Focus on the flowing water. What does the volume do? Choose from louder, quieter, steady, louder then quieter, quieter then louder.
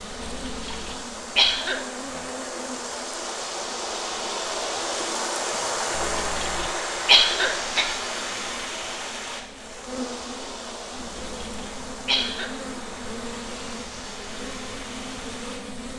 louder then quieter.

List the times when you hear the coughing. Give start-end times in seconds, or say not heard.
0.5-1.9, 6.0-8.0, 11.2-12.6.